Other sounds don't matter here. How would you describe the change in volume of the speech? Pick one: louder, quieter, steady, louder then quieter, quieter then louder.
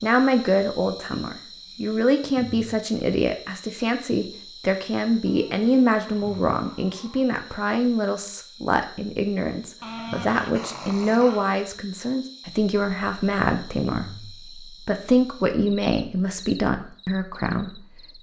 steady.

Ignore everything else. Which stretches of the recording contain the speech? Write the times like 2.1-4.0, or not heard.
0.0-18.1.